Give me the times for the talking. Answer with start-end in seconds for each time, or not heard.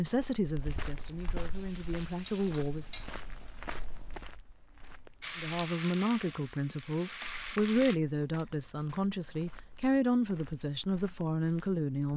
0.0-2.9, 5.3-12.1.